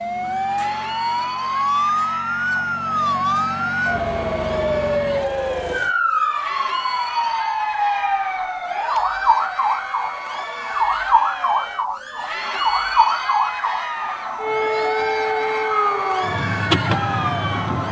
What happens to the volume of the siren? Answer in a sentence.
The loudness of the siren stays about the same.